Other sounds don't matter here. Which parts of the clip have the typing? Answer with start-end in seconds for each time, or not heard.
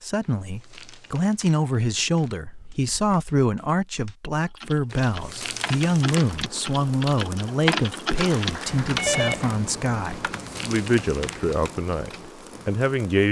2.3-12.7.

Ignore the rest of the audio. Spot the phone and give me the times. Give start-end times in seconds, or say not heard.
8.2-9.6.